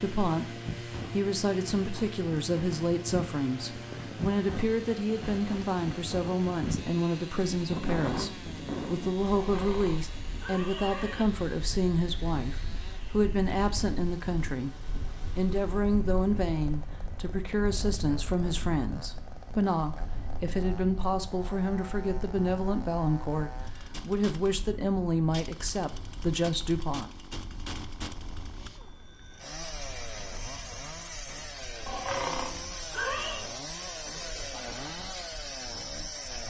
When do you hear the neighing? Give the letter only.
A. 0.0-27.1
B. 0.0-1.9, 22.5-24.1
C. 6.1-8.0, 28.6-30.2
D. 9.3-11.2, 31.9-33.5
D.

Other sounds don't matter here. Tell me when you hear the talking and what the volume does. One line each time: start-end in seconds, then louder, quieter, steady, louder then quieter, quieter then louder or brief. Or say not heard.
0.0-27.1 steady.